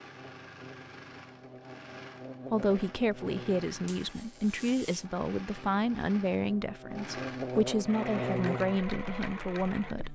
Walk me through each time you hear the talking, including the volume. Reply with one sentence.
You can hear the talking from 2.5 to 10.1 s, at a steady volume.